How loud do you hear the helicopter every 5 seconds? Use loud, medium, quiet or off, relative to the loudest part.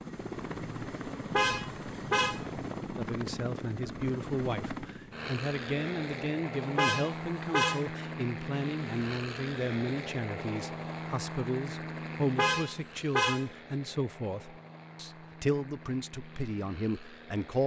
loud, loud, loud, medium.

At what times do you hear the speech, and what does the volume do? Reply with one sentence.
The speech can be heard from 3.0 to 17.6 s, at a steady volume.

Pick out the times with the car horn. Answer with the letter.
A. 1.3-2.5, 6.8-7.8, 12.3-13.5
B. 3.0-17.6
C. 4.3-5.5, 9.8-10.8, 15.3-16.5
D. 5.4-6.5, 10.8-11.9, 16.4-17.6
A.